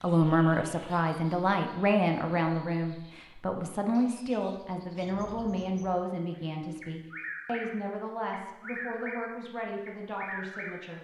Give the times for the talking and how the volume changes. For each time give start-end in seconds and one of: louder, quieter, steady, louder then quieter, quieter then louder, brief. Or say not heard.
0.0-10.9 quieter.